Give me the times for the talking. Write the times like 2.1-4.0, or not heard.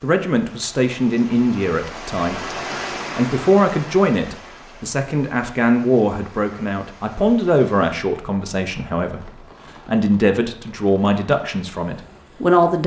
0.0-12.8.